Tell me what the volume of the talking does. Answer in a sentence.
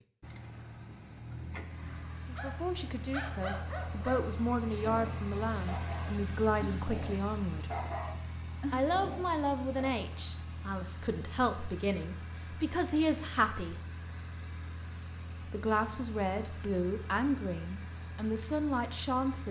The volume of the talking stays about the same.